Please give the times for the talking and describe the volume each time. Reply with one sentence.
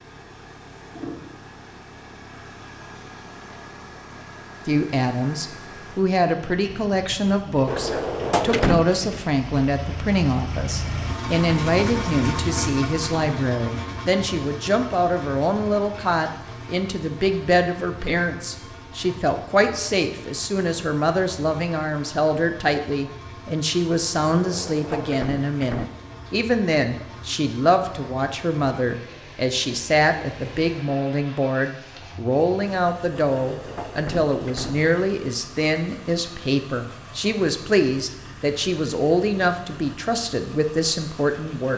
The talking can be heard from 4.7 to 41.7 s, at a steady volume.